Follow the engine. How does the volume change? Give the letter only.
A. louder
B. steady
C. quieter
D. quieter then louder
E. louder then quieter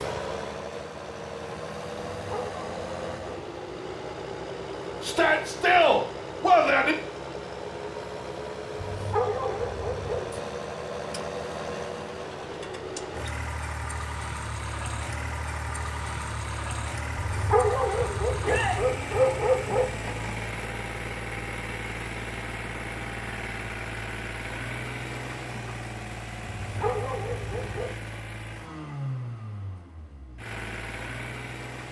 B.